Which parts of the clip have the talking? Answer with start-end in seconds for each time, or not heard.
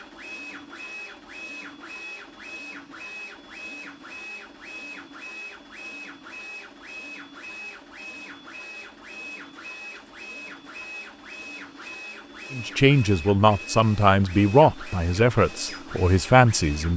12.5-16.9.